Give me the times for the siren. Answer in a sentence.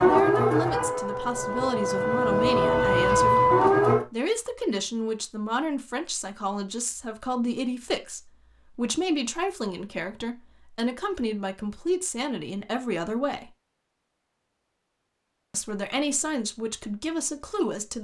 The siren can be heard from 0.0 to 4.0 s.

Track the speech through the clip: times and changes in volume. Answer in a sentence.
You can hear the speech from 0.0 to 13.5 s, at a steady volume; and briefly from 15.5 to 17.9 s.